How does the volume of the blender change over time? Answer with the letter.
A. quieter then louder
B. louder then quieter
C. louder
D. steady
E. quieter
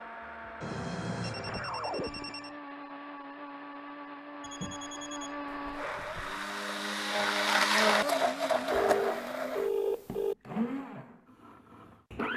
B.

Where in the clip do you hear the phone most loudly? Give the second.
10 s.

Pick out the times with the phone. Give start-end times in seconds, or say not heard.
0.6-2.5, 4.4-6.5, 8.7-10.3.